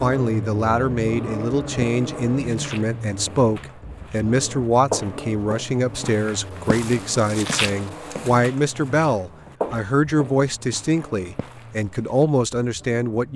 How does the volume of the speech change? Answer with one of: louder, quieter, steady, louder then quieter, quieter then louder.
steady.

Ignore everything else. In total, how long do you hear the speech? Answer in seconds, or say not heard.
13 s.